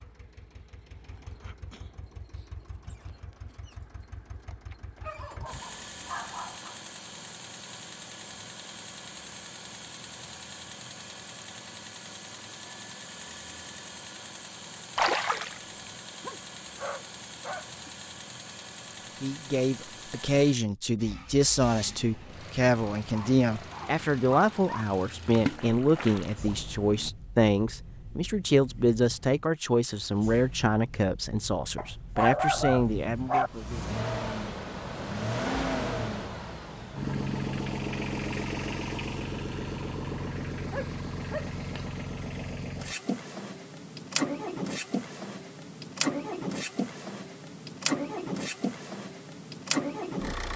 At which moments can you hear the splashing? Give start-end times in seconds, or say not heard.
14.9-15.9, 25.4-27.1.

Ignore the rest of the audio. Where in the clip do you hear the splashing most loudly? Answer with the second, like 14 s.
15 s.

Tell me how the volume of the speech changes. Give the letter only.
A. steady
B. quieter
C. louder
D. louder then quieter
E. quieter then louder
A.